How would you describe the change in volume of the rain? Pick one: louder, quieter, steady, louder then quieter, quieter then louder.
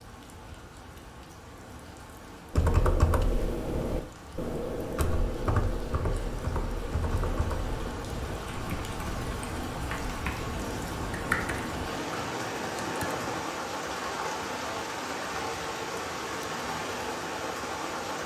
louder.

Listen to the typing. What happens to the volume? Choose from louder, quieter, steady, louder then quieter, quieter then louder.
quieter.